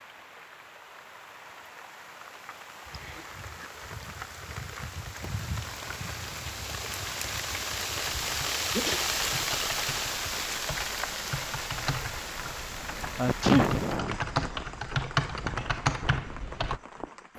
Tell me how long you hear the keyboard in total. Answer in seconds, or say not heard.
9 s.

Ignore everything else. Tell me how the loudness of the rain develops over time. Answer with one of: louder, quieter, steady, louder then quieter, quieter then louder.
louder then quieter.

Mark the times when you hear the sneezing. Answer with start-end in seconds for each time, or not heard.
2.9-3.7, 8.6-9.1, 13.2-14.2.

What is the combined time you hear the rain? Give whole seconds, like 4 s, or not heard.
17 s.